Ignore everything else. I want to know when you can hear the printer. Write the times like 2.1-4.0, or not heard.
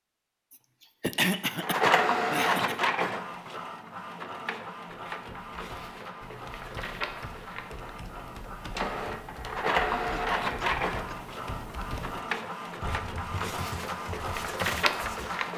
1.6-15.5.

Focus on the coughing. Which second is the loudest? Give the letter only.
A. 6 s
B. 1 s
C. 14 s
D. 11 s
B.